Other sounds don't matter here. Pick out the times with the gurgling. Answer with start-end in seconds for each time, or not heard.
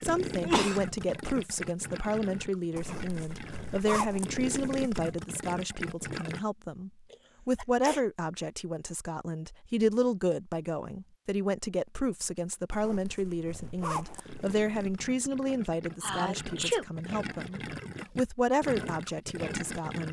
0.0-6.5, 14.2-20.0.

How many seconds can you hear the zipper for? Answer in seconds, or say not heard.
5 s.